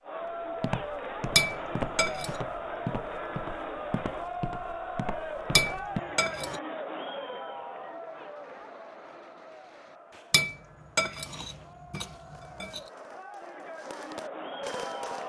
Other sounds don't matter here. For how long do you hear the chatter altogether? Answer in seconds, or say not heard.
15 s.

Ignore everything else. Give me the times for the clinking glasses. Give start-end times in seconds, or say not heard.
1.4-2.4, 5.5-6.6, 10.3-12.8.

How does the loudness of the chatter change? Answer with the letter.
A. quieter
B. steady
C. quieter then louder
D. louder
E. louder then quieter
C.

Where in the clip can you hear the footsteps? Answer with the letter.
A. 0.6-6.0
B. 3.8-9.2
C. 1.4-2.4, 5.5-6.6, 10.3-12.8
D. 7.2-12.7
A.